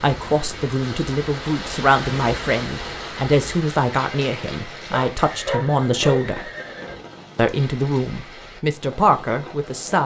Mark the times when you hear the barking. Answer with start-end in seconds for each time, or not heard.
4.9-6.2.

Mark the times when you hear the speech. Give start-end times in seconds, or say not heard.
0.0-6.5, 7.3-10.0.